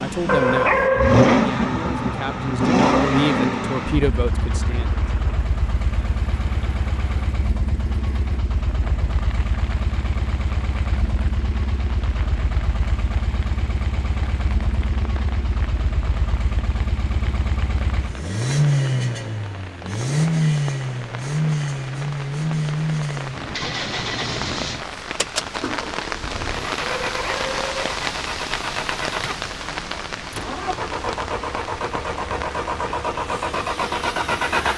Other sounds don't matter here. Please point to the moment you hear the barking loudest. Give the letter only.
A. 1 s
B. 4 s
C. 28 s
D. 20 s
A.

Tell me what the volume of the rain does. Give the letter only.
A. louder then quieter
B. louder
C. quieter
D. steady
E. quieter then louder
B.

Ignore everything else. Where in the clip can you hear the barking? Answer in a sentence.
You can hear the barking from 0.2 to 1.6 s and from 26.9 to 27.9 s.